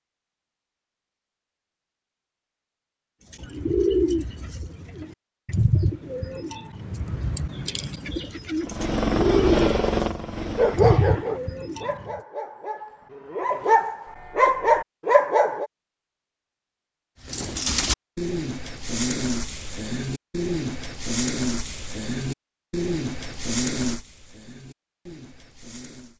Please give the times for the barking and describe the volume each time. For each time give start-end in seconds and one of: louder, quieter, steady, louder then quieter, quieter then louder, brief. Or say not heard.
10.6-15.7 quieter then louder.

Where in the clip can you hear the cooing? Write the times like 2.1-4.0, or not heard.
3.3-12.2, 17.2-26.1.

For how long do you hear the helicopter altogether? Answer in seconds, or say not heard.
3 s.